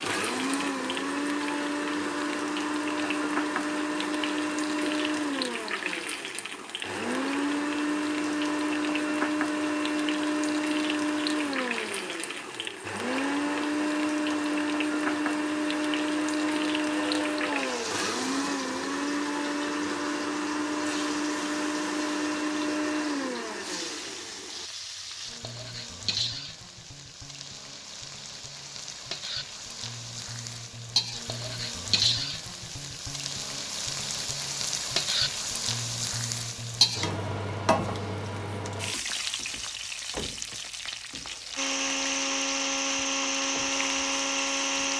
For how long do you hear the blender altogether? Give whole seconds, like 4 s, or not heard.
28 s.